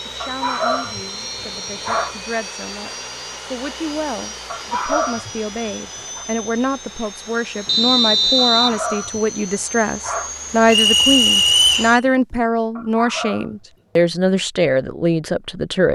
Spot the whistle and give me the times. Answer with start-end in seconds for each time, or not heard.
1.1-2.2, 7.7-8.8, 10.7-11.9.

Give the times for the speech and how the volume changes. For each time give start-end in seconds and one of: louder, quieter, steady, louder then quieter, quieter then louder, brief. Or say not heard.
0.1-15.9 louder.